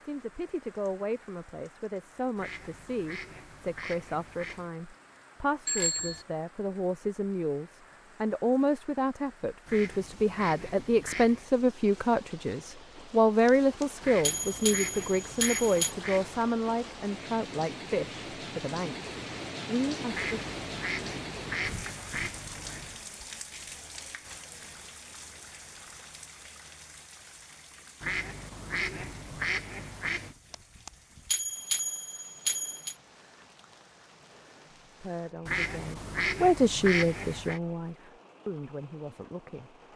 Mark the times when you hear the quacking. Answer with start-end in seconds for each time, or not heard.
2.4-4.7, 9.7-11.5, 14.0-16.5, 20.1-22.9, 28.0-30.4, 35.5-37.6.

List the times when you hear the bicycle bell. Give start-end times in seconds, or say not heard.
5.7-6.2, 13.4-15.9, 30.5-33.0.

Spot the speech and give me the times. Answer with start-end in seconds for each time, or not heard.
0.0-20.4, 34.9-39.8.